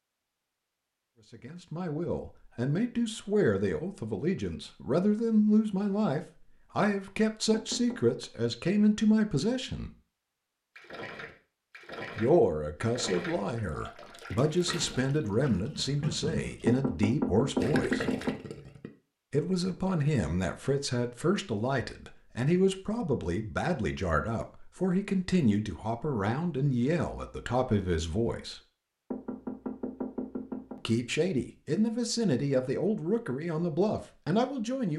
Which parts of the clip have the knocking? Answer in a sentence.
You can hear the knocking from 7.5 to 8.2 s, from 16.6 to 18.4 s and from 29.1 to 30.8 s.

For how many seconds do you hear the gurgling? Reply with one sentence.
The gurgling can be heard for 8 seconds in total.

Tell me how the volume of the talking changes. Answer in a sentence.
The volume of the talking stays about the same.